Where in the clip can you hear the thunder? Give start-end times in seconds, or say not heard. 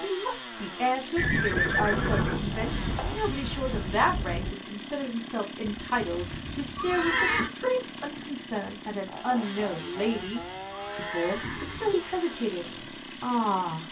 1.2-4.5.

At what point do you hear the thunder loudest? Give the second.
2 s.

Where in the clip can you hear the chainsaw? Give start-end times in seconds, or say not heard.
0.0-13.8.